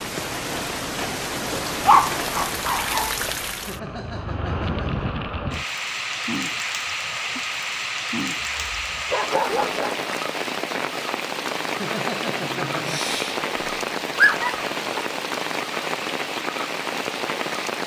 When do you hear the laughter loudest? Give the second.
12 s.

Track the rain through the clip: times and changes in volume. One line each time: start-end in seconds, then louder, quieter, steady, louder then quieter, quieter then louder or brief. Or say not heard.
0.0-17.8 steady.